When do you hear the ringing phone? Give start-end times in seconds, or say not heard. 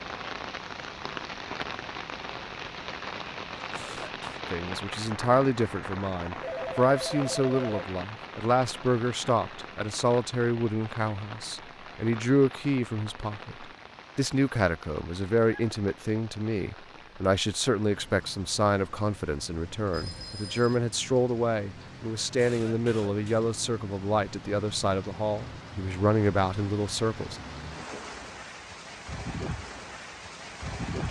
6.4-7.9, 19.9-20.8.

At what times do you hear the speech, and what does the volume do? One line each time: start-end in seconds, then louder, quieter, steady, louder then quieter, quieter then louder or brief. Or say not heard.
4.5-27.4 steady.